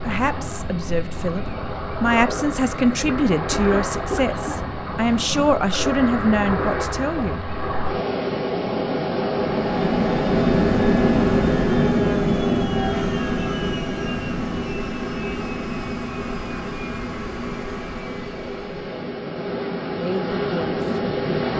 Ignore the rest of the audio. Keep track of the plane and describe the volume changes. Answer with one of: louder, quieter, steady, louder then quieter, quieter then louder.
quieter.